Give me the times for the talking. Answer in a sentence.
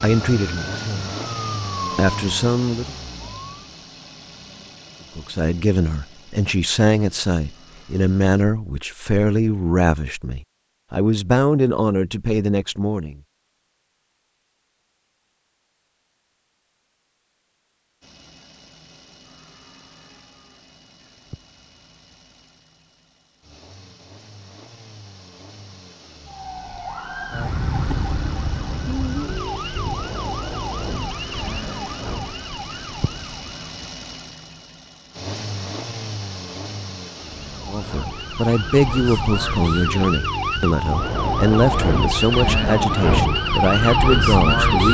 The talking can be heard from 0.0 to 1.1 s, from 1.9 to 3.0 s, from 5.2 to 13.2 s and from 37.6 to 44.8 s.